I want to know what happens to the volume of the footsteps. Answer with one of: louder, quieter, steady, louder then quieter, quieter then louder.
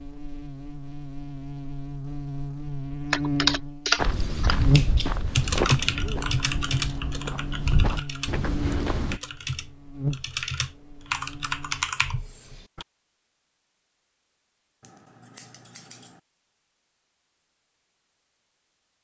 quieter then louder.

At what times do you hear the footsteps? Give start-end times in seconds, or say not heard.
4.0-9.2.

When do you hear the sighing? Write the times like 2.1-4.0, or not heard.
not heard.